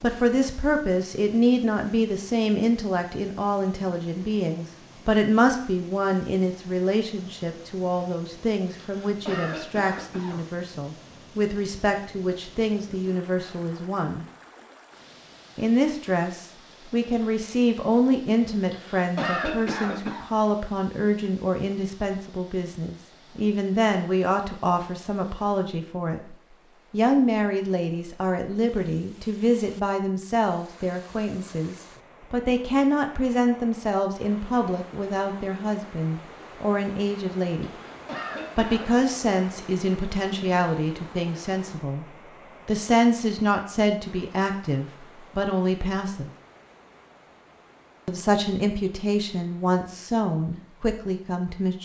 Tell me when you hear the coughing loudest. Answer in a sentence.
The volume of the coughing peaks at 19 seconds.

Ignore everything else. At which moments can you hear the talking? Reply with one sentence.
You can hear the talking from 0.0 to 14.2 s, from 15.6 to 37.7 s, from 38.5 to 42.0 s, from 42.6 to 46.3 s and from 48.0 to 51.8 s.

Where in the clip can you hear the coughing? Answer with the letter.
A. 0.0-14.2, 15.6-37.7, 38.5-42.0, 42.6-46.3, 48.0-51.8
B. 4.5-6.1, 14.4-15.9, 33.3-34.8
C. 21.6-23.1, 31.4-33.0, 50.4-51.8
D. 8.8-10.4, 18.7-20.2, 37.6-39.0
D.